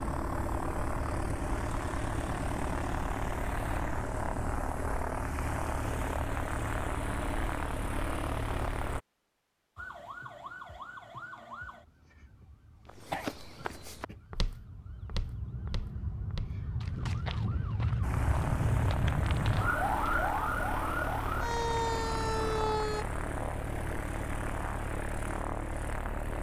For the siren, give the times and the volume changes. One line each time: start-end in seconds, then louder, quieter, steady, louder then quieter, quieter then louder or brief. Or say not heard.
9.8-23.1 quieter then louder.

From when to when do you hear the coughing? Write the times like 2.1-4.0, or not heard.
13.1-14.2.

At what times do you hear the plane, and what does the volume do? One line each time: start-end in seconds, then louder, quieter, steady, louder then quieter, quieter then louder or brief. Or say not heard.
0.0-9.0 steady
18.0-26.3 steady.